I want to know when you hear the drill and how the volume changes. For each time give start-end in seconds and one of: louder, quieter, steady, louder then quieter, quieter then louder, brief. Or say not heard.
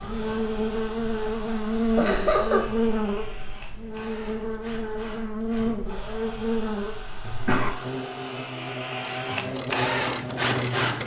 0.0-11.0 louder.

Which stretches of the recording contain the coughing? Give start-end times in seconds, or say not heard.
1.9-2.6, 7.2-7.7.